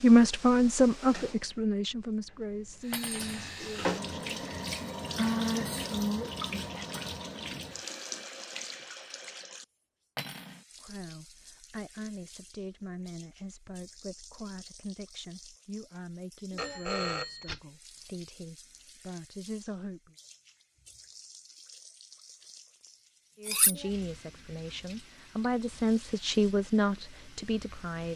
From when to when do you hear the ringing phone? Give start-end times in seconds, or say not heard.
16.6-17.6.